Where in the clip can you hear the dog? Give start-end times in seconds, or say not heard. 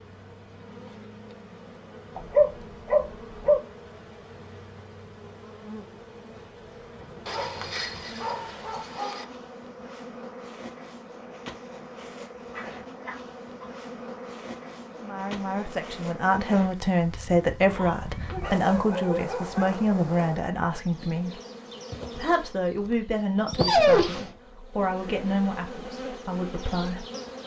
2.1-3.6, 7.2-9.2, 12.5-13.7, 17.6-19.7, 23.4-24.3.